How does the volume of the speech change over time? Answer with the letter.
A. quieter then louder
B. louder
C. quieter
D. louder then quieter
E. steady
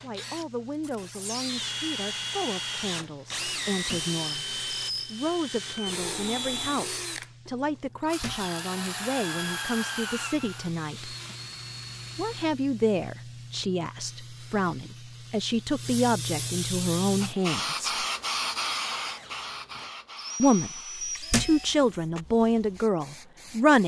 B.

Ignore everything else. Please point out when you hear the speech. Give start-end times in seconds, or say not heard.
0.0-11.2, 12.2-18.1, 20.4-23.8.